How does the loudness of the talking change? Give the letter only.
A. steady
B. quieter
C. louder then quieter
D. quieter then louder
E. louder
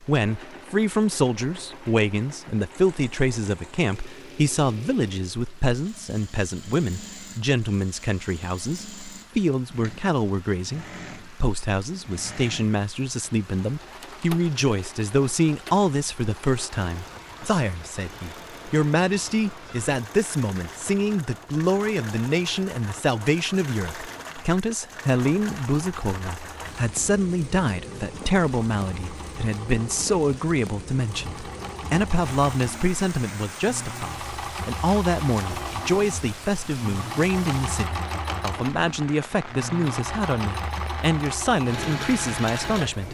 A.